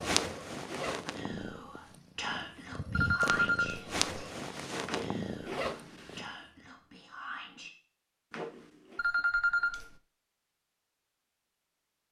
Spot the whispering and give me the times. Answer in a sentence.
The whispering can be heard from 1.1 to 7.7 s.